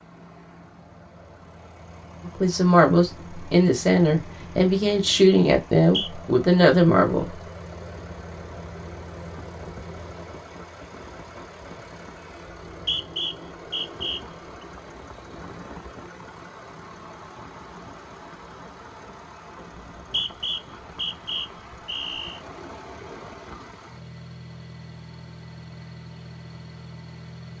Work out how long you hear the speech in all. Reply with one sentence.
You can hear the speech for 5 seconds altogether.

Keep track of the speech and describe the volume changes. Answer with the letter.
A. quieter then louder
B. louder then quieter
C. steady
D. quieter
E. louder
C.